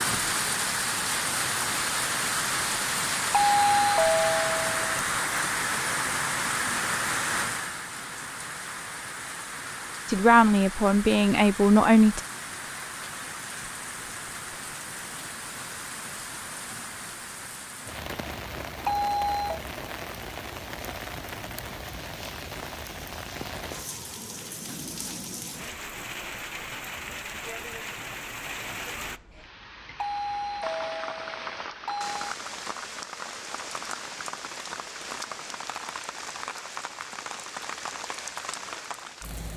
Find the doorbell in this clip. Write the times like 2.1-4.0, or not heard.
3.3-4.8, 18.9-19.6, 30.0-32.4.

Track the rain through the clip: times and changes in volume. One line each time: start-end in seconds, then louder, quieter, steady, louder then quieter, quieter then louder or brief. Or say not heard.
0.0-39.5 quieter.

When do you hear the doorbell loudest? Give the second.
4 s.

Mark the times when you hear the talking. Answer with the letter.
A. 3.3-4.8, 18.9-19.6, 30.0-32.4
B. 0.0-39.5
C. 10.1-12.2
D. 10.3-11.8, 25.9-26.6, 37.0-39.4
C.